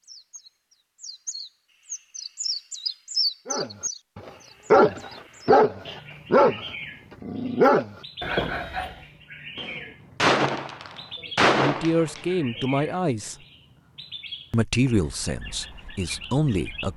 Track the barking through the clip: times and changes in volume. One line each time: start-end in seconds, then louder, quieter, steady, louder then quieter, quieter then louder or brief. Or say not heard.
3.5-9.0 quieter.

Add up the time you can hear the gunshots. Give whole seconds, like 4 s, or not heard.
3 s.